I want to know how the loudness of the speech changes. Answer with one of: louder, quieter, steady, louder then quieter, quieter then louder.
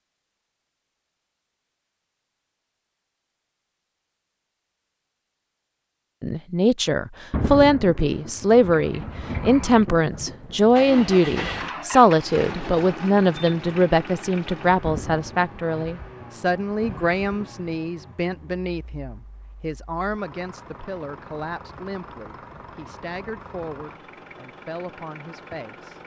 quieter.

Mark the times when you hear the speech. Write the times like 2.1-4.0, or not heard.
6.2-26.0.